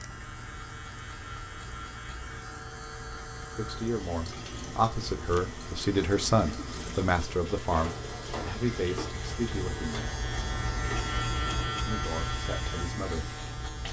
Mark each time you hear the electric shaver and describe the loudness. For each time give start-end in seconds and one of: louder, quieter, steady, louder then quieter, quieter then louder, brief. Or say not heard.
0.0-13.8 louder.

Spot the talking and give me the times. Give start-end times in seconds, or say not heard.
3.5-10.1, 11.8-13.8.